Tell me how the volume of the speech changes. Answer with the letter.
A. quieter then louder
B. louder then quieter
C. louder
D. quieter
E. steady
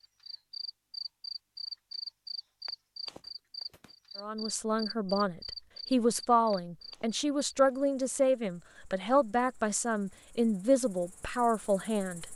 E.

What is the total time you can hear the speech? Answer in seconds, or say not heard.
8 s.